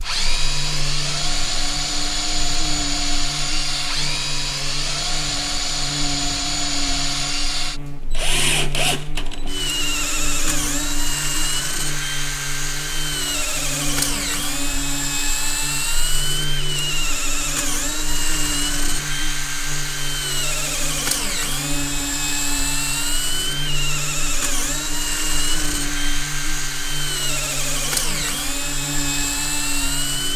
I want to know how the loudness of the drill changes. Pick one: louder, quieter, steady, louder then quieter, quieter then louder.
steady.